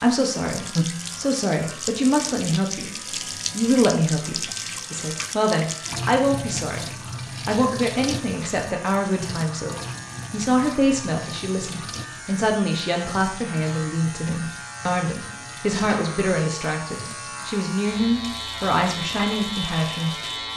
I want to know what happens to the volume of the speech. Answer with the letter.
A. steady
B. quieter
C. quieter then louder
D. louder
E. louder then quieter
A.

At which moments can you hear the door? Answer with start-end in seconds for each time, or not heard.
not heard.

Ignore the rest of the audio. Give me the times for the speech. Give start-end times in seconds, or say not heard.
0.0-6.8, 7.5-20.5.